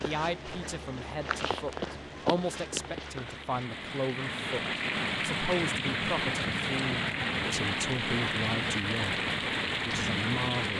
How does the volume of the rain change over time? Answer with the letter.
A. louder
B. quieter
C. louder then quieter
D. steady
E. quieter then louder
A.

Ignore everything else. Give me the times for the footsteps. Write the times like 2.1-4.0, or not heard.
0.0-3.6.